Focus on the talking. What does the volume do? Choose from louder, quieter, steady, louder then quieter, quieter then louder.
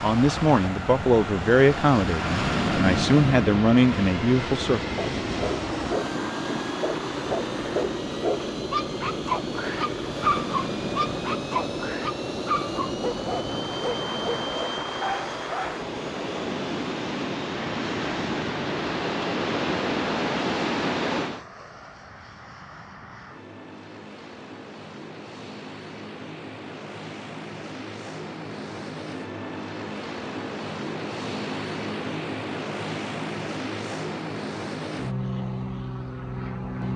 quieter then louder.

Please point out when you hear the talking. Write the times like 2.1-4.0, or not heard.
0.0-4.9.